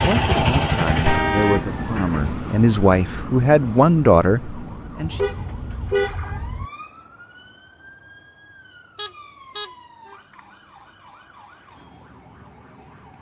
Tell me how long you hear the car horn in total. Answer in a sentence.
You can hear the car horn for 4 seconds altogether.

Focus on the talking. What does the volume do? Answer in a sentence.
The volume of the talking goes up.